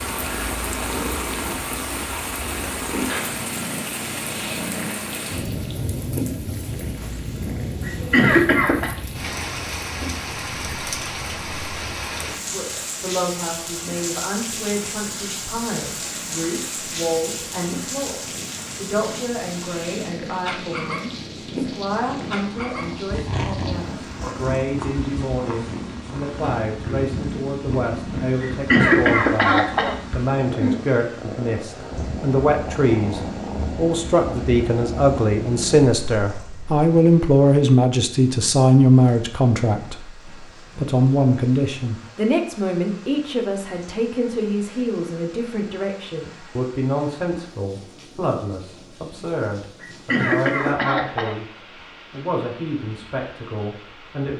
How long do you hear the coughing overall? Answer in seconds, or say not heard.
4 s.